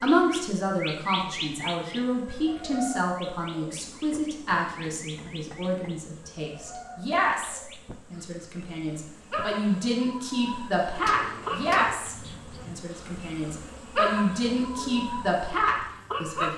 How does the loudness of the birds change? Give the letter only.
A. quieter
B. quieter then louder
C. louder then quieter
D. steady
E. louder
B.